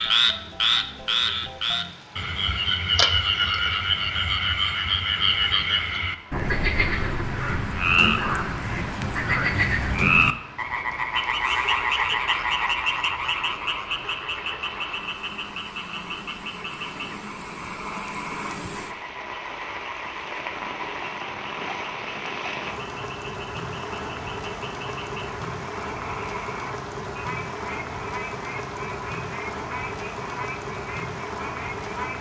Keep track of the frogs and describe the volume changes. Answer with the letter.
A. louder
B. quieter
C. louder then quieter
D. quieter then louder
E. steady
B.